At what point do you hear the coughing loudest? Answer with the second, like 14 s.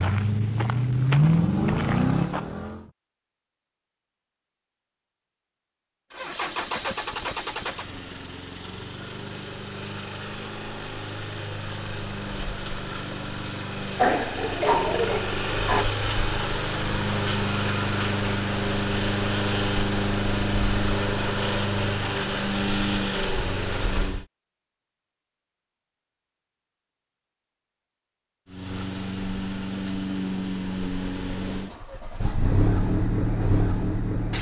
14 s.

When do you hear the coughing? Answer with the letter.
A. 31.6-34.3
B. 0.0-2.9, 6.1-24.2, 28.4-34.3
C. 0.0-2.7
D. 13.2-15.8
D.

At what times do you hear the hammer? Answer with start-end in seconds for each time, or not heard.
not heard.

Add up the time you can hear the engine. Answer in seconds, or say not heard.
27 s.